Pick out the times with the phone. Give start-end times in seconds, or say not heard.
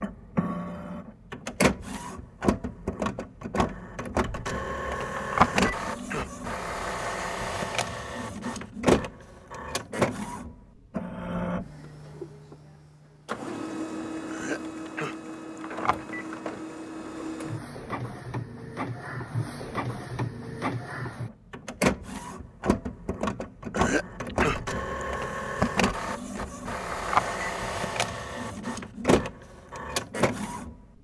5.2-5.7, 15.6-16.2, 26.9-27.3.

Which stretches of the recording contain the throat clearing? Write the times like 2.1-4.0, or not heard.
5.5-6.3, 14.3-15.6, 23.7-25.1.